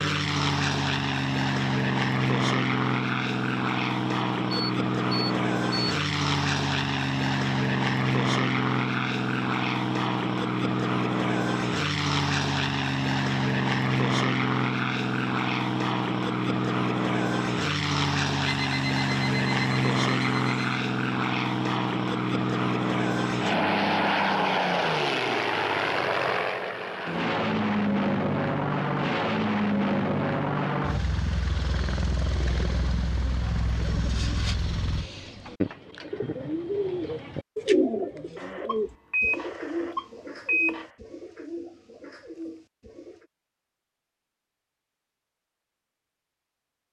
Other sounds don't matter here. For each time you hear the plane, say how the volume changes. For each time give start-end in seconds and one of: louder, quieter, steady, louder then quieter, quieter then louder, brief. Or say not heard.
0.0-35.1 steady.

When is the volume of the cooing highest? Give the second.
38 s.